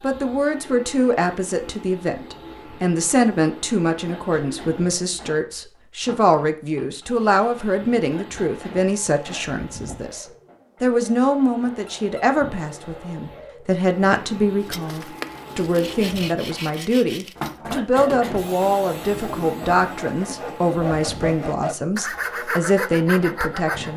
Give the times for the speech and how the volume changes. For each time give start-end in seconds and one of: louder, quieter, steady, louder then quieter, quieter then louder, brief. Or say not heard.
0.0-23.9 steady.